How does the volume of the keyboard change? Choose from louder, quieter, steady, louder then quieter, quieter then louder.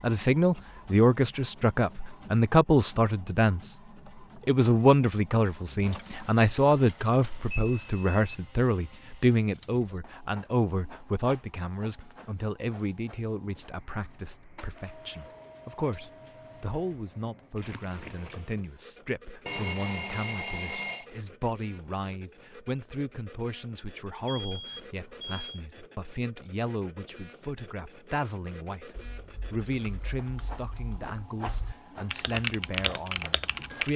louder.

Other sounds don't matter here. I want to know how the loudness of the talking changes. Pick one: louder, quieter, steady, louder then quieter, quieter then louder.
quieter.